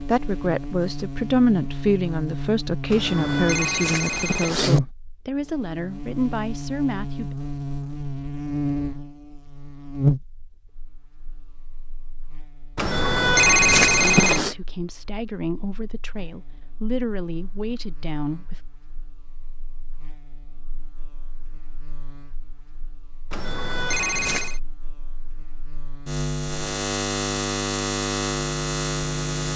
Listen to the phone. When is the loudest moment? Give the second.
14 s.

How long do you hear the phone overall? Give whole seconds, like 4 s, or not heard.
5 s.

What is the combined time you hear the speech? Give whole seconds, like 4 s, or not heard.
12 s.